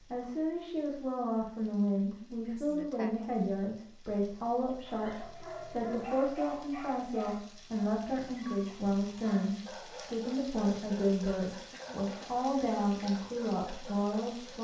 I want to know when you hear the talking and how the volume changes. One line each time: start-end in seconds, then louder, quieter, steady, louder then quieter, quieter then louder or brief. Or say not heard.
0.0-14.5 steady.